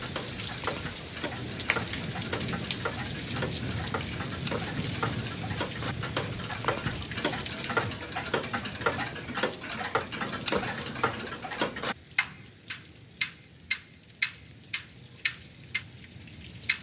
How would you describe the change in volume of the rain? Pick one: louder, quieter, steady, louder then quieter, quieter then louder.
quieter.